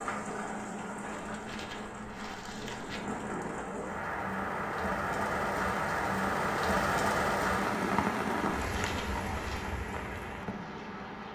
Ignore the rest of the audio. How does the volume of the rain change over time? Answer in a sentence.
The volume of the rain goes up, then down.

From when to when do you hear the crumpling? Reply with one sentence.
The crumpling can be heard from 1.1 to 3.0 s and from 8.6 to 9.7 s.